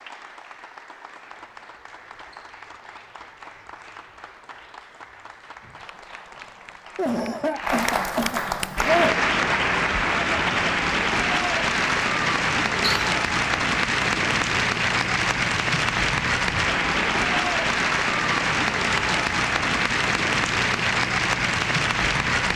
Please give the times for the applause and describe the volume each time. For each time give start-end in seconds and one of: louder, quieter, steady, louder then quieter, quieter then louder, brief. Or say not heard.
0.0-22.5 louder.